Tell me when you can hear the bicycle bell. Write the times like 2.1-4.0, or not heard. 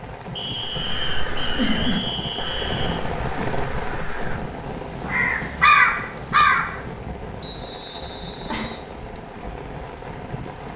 not heard.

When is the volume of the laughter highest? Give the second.
2 s.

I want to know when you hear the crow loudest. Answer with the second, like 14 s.
6 s.